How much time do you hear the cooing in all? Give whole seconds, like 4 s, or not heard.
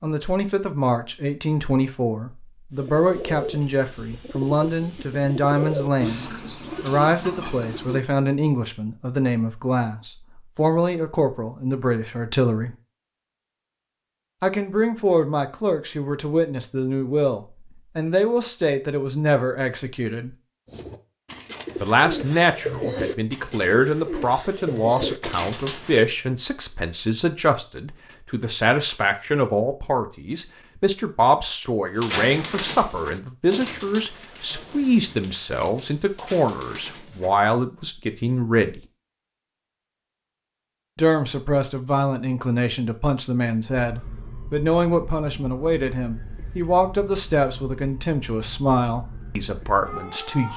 16 s.